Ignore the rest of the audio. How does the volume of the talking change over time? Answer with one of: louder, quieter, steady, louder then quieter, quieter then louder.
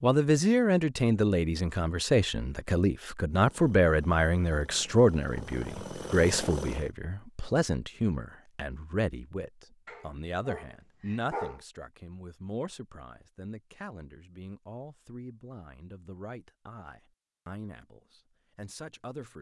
quieter.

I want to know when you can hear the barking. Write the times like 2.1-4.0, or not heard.
9.8-11.6.